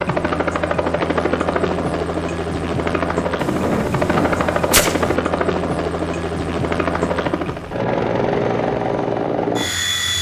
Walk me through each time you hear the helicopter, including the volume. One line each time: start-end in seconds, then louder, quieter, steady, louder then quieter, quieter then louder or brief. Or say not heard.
0.0-10.1 steady.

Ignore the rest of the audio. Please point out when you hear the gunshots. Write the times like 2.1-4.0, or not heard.
3.4-5.2.